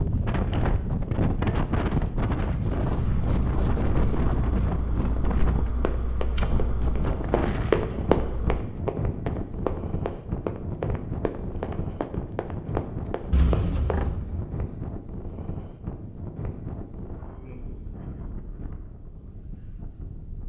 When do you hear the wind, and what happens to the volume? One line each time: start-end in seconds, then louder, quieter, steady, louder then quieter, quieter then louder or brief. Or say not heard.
0.0-20.4 quieter.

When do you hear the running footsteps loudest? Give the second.
8 s.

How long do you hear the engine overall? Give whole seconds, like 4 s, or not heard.
6 s.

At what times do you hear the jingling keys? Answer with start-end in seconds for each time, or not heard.
13.3-14.7.